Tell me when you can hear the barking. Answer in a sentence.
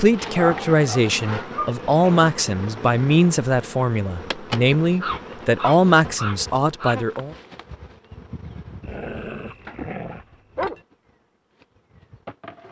The barking can be heard from 0.3 to 2.2 s, from 5.0 to 7.0 s and from 8.8 to 10.8 s.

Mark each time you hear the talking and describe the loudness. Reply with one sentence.
The talking can be heard from 0.0 to 7.3 s, at a steady volume.